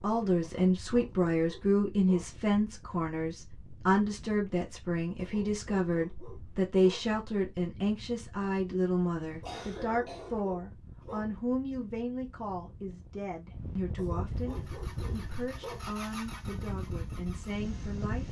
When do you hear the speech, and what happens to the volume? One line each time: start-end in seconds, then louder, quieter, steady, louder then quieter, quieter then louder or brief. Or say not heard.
0.0-18.2 quieter.